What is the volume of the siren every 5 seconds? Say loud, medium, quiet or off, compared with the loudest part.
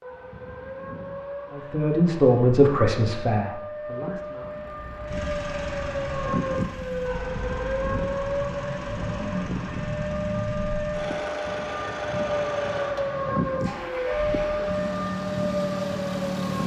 medium, loud, loud, loud.